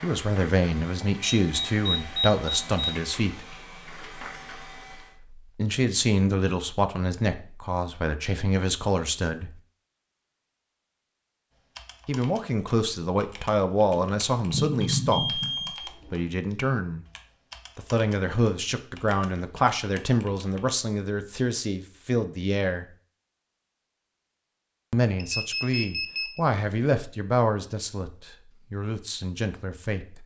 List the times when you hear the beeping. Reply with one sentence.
The beeping can be heard from 1.2 to 2.9 s, from 14.5 to 16.1 s and from 25.1 to 26.4 s.